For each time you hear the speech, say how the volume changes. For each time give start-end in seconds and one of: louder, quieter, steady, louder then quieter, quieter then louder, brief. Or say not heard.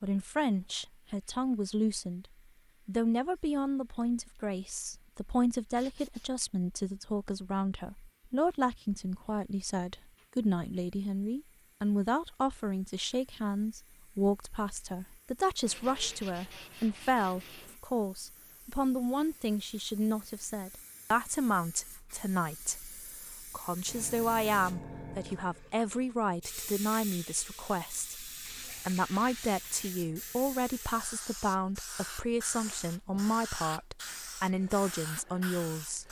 0.0-2.2 brief
2.9-36.0 steady.